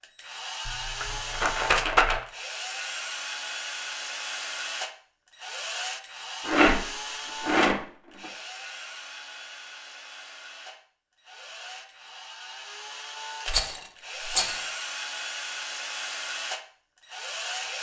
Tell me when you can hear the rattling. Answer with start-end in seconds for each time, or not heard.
0.7-2.2, 6.5-7.8, 13.4-14.7.